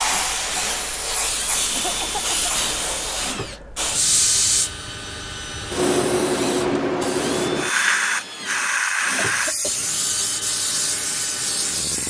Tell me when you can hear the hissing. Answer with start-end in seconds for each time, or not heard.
0.0-12.0.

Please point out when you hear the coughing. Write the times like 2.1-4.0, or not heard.
1.7-2.5, 9.2-9.8.